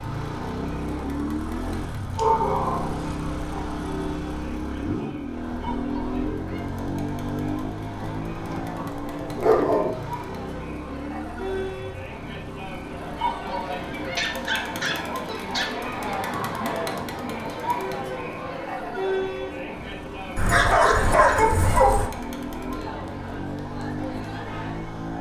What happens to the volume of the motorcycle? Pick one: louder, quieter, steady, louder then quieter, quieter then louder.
quieter then louder.